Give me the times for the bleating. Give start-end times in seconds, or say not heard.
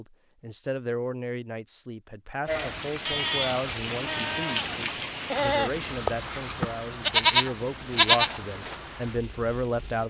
2.5-8.8.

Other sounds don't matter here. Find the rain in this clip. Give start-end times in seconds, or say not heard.
2.5-10.0.